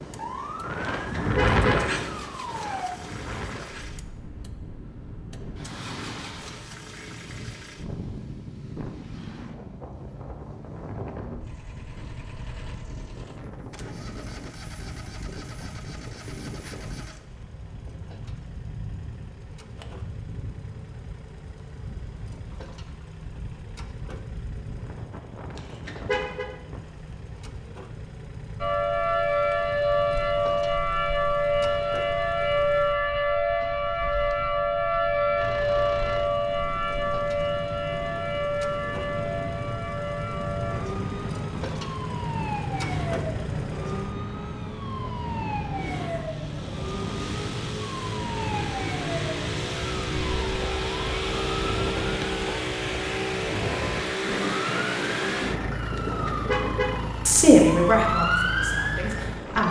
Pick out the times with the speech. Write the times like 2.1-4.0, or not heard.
57.2-59.6.